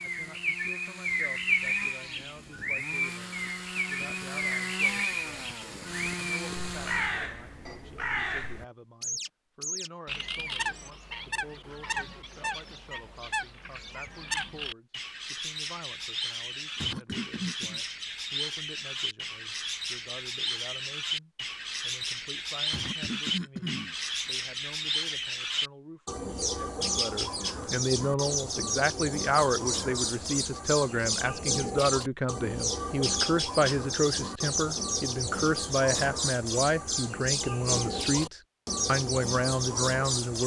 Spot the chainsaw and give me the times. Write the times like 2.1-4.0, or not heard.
0.0-7.3.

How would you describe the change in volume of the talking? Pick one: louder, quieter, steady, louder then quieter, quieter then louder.
louder.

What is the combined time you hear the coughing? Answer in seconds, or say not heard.
2 s.